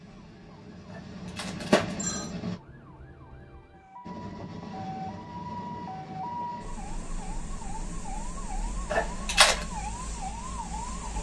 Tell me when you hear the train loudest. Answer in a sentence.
The loudest moment of the train is at 2 seconds.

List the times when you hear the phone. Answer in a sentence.
You can hear the phone from 1.4 to 2.3 s and from 8.9 to 9.7 s.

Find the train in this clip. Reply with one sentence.
The train can be heard from 0.0 to 2.6 s and from 4.0 to 11.1 s.